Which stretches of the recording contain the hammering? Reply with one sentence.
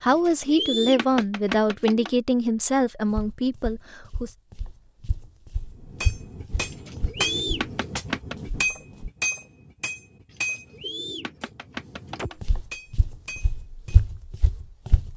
You can hear the hammering from 5.7 to 14.0 s.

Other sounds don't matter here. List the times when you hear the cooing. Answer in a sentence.
The cooing can be heard from 0.1 to 2.1 s, from 6.7 to 8.3 s and from 10.3 to 12.4 s.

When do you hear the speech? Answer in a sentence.
The speech can be heard from 0.0 to 4.3 s.